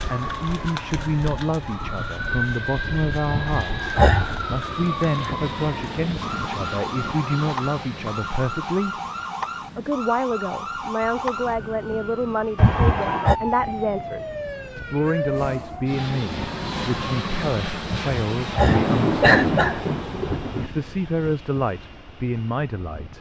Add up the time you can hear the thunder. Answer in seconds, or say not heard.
2 s.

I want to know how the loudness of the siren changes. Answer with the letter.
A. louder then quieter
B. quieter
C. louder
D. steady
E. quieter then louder
D.